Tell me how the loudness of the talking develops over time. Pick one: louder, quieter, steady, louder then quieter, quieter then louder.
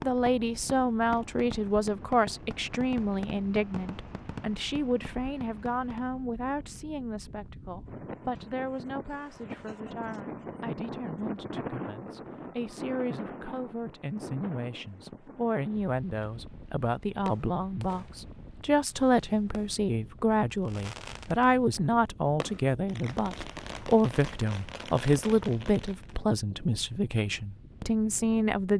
quieter then louder.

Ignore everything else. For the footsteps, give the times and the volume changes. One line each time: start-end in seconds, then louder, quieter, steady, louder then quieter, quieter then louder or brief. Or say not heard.
not heard.